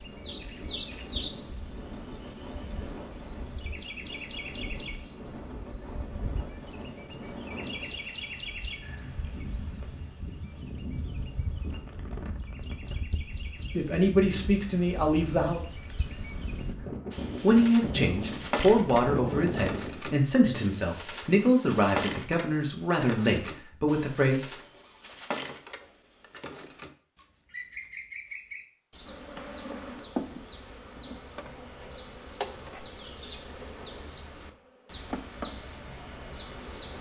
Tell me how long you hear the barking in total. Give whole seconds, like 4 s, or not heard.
not heard.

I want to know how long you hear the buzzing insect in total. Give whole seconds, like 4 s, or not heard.
8 s.